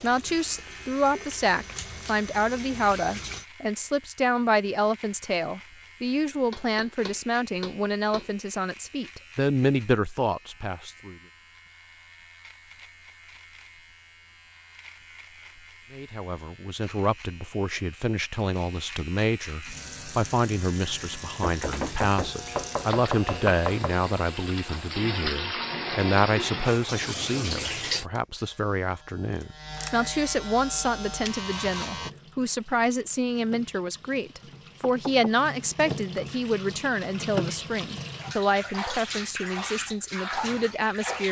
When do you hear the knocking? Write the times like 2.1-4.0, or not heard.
6.5-8.3, 21.4-23.9, 34.5-35.4.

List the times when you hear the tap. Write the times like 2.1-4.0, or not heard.
0.0-3.5, 19.6-28.1, 30.6-41.2.